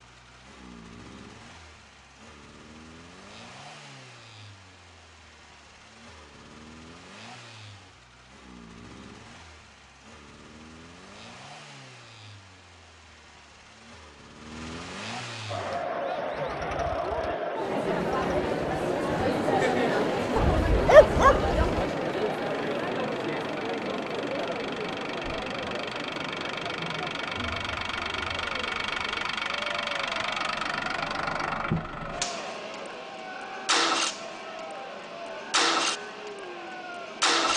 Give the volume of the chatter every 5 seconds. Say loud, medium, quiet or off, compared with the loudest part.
off, off, off, loud, loud, medium, quiet, quiet.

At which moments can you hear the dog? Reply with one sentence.
The dog can be heard from 20.4 to 21.9 s.